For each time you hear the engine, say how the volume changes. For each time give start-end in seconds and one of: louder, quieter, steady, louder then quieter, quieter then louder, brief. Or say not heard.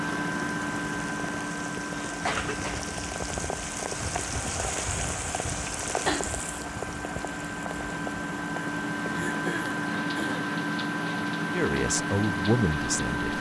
0.0-13.3 quieter then louder.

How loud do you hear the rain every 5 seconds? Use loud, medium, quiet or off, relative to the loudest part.
loud, loud, medium.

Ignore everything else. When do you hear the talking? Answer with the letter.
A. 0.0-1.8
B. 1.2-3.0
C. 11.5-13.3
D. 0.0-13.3
C.